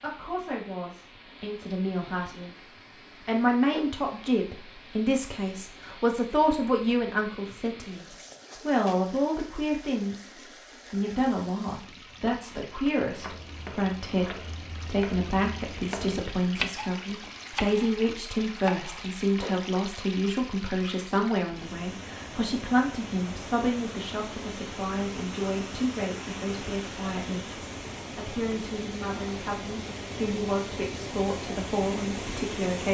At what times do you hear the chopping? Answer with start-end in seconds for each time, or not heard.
13.1-19.1.